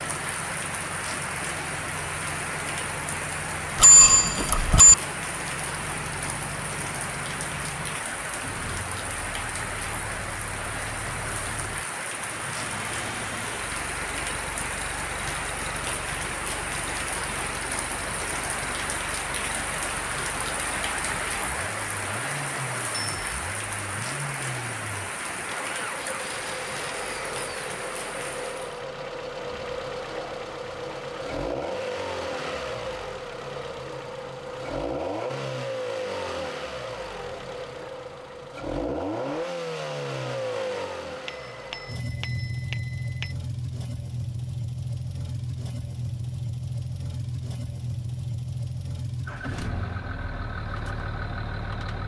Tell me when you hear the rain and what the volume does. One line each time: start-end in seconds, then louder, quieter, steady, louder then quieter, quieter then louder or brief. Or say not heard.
0.0-28.9 steady.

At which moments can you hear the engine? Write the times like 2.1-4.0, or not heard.
0.0-52.0.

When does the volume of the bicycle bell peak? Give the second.
4 s.